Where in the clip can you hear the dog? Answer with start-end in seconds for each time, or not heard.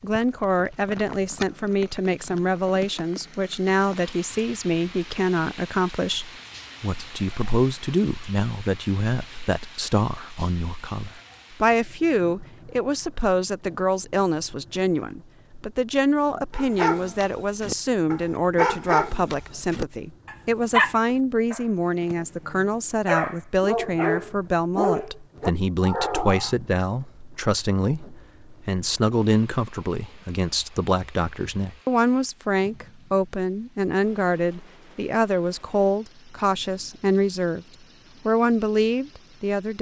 16.5-26.6.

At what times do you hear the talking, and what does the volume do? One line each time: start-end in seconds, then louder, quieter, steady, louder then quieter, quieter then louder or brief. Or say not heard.
0.0-37.6 steady
38.2-39.7 brief.